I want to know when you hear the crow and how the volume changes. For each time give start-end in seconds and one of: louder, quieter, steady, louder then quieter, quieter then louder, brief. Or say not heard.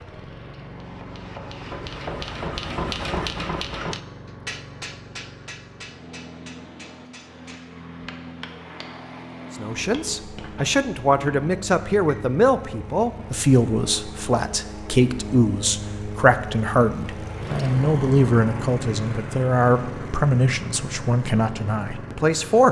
not heard.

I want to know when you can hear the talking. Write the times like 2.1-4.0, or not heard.
9.6-22.6.